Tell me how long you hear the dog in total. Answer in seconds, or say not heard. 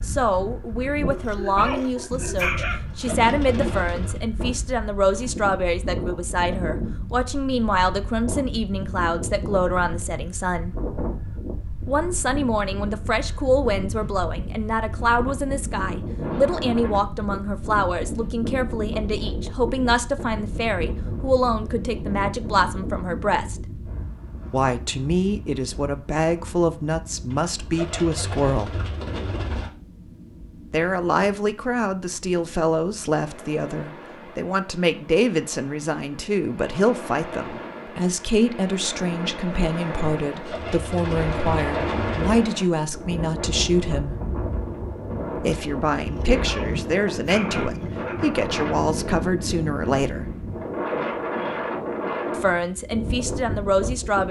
4 s.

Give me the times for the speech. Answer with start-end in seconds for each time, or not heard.
0.0-10.8, 11.8-23.6, 24.5-28.8, 30.7-44.1, 45.4-50.3, 52.4-54.2.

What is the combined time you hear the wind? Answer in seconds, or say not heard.
54 s.